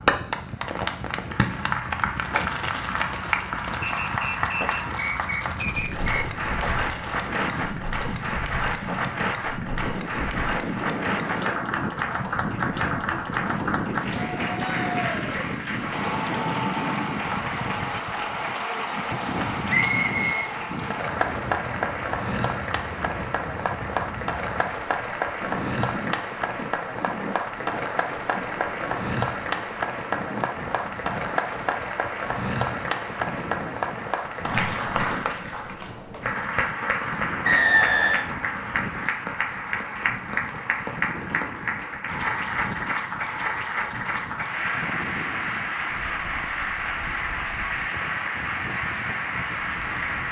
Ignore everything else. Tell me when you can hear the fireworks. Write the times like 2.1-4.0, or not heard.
0.7-9.1.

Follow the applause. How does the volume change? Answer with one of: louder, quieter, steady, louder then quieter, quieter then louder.
steady.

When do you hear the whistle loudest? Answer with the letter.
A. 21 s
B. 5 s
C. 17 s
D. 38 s
D.